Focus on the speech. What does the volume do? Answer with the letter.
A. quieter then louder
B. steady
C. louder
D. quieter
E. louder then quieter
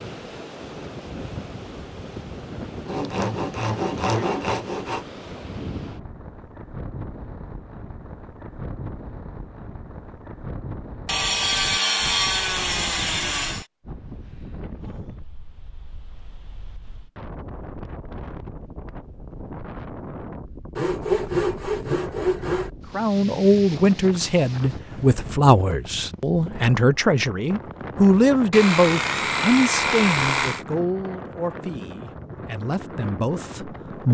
D.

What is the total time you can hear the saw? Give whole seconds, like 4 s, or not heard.
9 s.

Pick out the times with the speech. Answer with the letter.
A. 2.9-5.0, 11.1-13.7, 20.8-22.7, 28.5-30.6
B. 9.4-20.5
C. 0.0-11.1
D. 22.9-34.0
D.